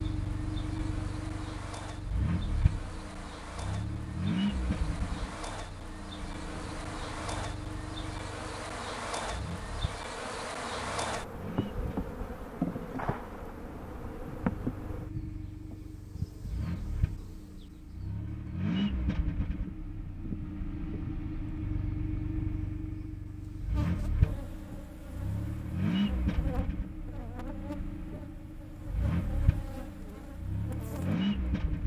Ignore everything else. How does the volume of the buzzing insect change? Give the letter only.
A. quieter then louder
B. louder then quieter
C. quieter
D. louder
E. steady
B.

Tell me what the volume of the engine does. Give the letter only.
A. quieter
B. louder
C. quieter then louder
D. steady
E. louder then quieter
C.